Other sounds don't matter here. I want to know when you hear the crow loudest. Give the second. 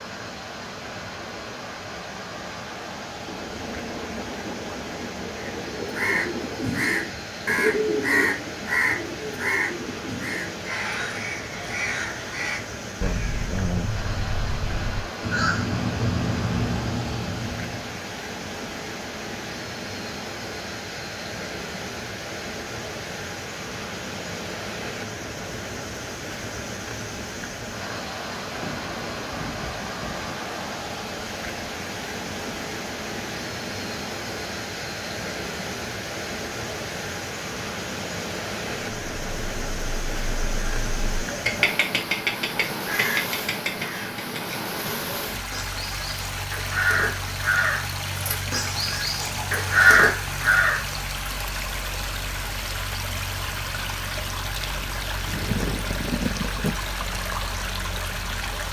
50 s.